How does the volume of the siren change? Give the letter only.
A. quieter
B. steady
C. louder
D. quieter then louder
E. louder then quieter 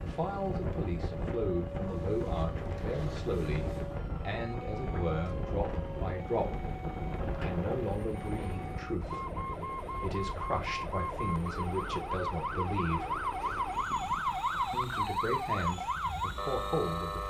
C.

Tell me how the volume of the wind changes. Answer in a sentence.
The loudness of the wind goes down.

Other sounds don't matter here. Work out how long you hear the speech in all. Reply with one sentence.
The speech can be heard for 15 seconds in total.